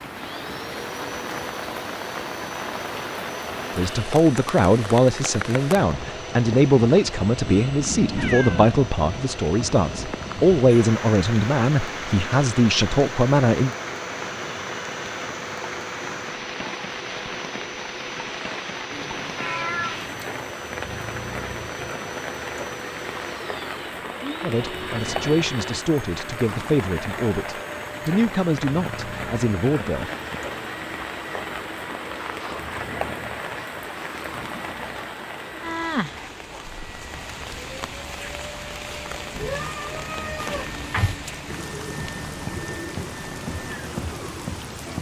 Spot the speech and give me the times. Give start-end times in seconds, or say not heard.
3.8-13.7, 24.4-30.1.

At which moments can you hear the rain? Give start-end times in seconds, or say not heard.
0.0-44.9.